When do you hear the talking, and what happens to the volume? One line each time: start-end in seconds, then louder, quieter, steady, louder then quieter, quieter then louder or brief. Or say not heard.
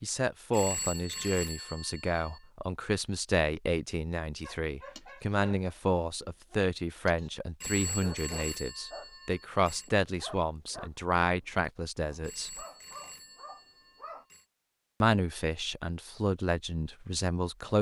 0.0-12.6 steady
15.0-17.7 brief.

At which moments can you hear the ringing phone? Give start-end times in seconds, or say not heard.
0.5-2.4, 7.6-9.9, 12.2-14.4.